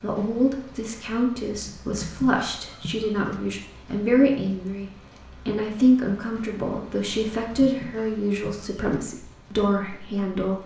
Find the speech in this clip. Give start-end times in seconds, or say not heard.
0.0-10.6.